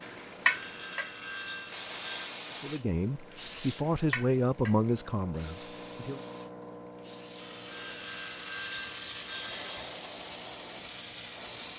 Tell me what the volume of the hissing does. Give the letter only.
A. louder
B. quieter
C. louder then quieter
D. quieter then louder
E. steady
D.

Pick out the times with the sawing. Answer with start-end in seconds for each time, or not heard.
0.4-2.4, 7.7-10.0.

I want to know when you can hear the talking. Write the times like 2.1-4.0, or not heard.
2.6-6.2.